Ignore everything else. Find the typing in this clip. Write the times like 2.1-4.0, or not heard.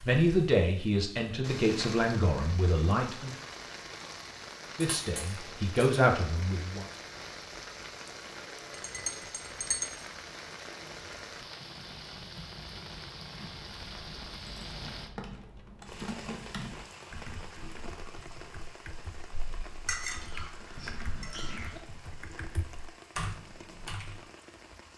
13.5-24.2.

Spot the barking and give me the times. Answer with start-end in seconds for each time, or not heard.
not heard.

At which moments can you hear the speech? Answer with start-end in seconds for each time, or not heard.
0.1-3.4, 4.8-6.8.